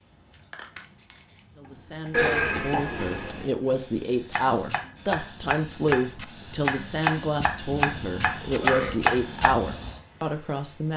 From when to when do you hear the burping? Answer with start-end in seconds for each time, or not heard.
2.1-3.5, 8.6-9.2.